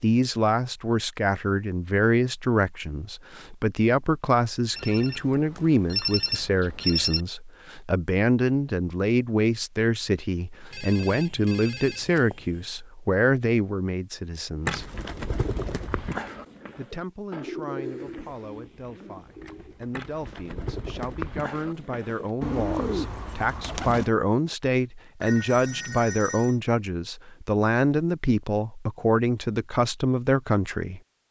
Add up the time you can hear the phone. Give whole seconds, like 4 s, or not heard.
6 s.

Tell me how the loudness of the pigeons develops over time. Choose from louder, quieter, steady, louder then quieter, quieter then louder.
quieter then louder.